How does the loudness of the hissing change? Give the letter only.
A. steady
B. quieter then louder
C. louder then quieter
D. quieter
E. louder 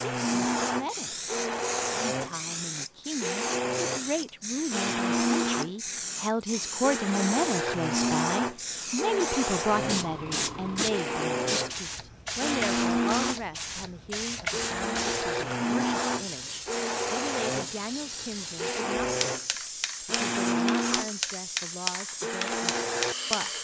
A.